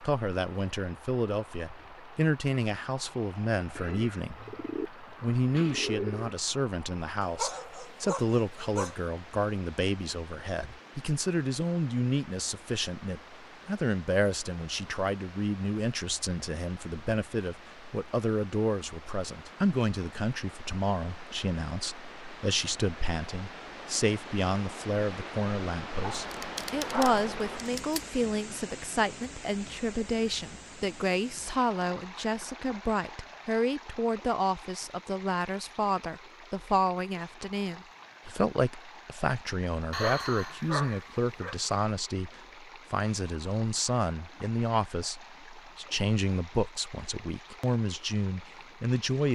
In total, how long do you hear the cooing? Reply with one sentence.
You can hear the cooing for 3 seconds altogether.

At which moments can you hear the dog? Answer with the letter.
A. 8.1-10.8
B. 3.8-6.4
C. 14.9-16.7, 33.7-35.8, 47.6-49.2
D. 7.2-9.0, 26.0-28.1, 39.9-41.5
D.